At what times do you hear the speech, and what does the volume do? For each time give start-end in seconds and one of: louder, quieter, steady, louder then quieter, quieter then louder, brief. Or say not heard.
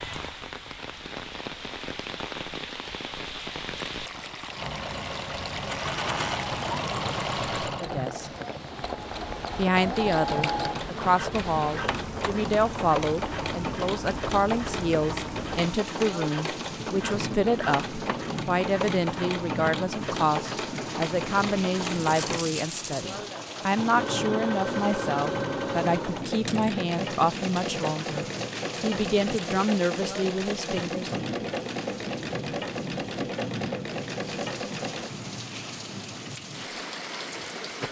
7.8-8.3 brief
9.6-31.2 steady.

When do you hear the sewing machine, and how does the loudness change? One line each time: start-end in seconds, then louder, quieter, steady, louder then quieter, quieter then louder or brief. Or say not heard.
4.5-35.1 steady.